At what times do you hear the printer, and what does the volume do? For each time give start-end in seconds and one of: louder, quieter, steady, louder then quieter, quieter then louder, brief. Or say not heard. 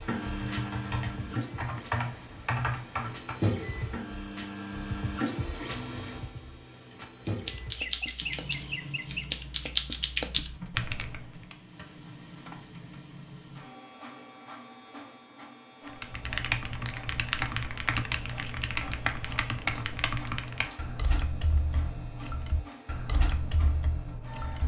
0.0-24.6 quieter.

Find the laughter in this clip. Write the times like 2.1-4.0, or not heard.
7.8-9.2.